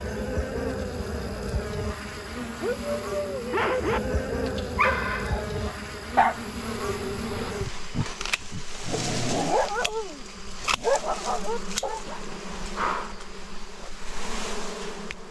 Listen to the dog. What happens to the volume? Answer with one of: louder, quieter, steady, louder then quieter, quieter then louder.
steady.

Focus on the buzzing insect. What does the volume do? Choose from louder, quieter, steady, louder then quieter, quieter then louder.
steady.